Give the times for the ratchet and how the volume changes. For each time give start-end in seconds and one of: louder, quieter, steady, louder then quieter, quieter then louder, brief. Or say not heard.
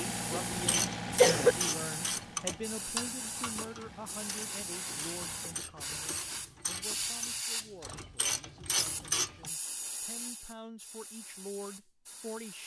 0.5-9.5 quieter then louder.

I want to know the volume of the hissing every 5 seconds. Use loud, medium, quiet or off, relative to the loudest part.
loud, loud, medium.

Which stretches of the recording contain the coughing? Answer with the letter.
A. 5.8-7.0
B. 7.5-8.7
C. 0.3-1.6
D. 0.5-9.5
C.